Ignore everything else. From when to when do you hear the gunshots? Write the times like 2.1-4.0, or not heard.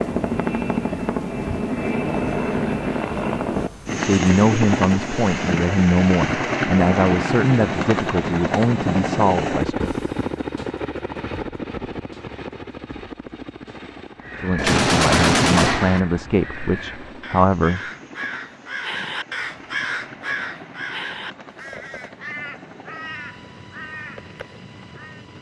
14.6-16.0.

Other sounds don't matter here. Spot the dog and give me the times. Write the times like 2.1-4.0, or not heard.
not heard.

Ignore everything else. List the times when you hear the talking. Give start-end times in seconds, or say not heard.
3.9-9.9, 14.3-17.8.